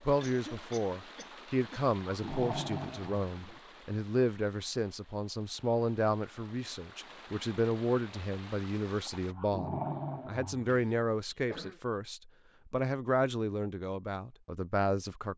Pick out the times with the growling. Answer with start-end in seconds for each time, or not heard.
2.0-3.6, 9.1-10.7.